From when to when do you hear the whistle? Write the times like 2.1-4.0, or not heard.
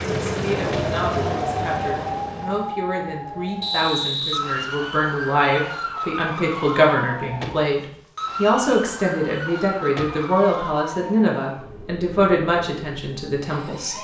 3.6-4.4.